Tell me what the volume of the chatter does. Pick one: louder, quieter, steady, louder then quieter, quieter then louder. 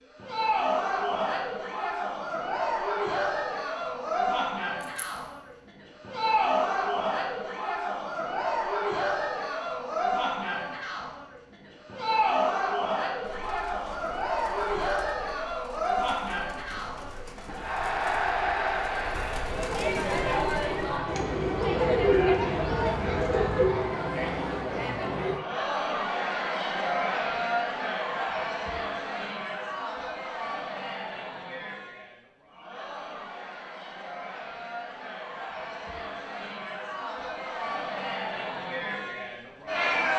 quieter.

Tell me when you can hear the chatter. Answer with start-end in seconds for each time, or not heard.
0.1-40.1.